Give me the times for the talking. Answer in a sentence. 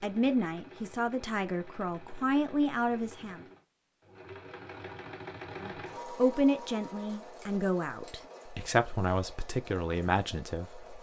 The talking can be heard from 0.0 to 3.4 s and from 5.5 to 10.9 s.